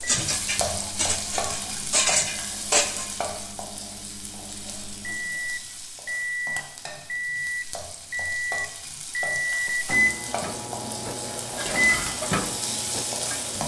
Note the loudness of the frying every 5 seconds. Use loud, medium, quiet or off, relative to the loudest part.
loud, medium, loud.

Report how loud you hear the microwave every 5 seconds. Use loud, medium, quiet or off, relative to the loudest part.
quiet, loud, loud.